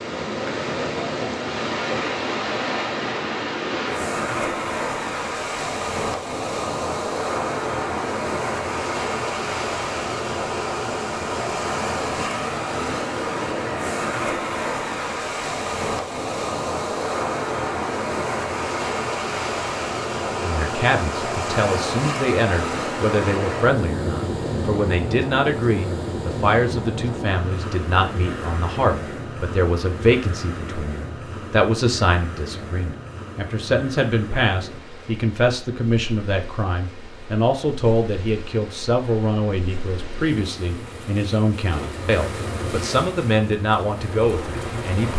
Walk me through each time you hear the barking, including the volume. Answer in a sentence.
You can't hear the barking here.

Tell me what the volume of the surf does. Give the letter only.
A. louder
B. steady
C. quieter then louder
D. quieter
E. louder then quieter
D.